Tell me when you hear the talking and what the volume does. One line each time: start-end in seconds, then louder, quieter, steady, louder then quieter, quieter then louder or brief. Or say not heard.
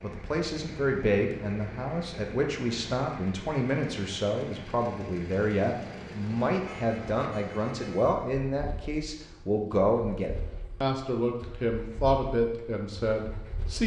0.0-13.8 steady.